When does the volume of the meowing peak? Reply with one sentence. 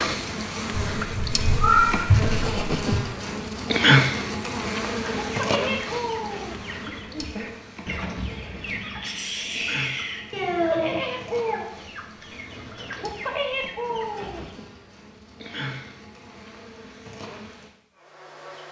The volume of the meowing peaks at 2 seconds.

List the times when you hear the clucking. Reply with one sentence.
The clucking can be heard from 5.0 to 14.5 s.